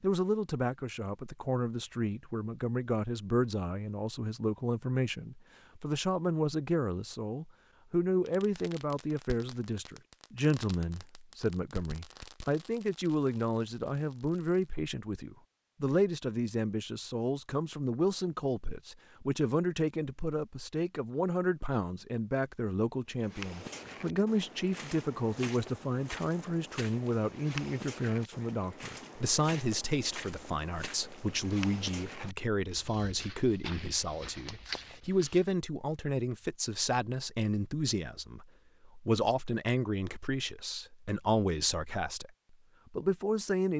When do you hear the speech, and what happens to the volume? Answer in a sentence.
You can hear the speech from 0.0 to 42.3 s, at a steady volume; and briefly from 42.9 to 43.7 s.